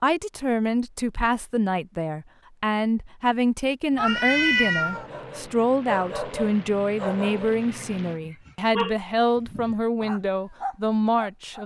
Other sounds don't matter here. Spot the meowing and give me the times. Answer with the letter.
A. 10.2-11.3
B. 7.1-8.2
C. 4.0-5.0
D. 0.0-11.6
C.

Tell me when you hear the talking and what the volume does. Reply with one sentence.
The talking can be heard from 0.0 to 11.6 s, at a steady volume.